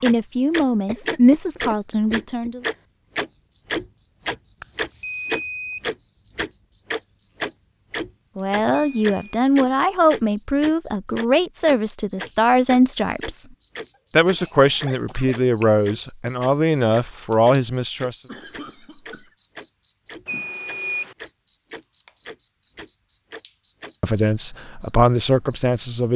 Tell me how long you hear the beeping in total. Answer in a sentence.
The beeping can be heard for 3 seconds in total.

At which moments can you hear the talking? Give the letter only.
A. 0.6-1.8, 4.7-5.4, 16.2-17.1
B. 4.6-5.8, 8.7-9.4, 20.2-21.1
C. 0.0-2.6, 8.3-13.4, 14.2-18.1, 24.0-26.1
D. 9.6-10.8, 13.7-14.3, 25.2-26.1
C.